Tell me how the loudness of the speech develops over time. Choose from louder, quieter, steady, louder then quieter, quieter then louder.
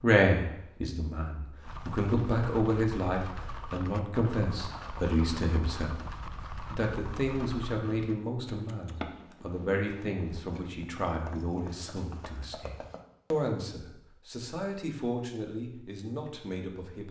quieter.